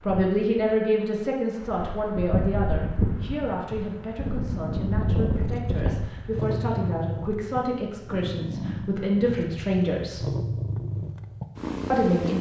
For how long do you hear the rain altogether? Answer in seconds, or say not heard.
7 s.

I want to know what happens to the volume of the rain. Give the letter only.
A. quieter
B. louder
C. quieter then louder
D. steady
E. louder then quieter
B.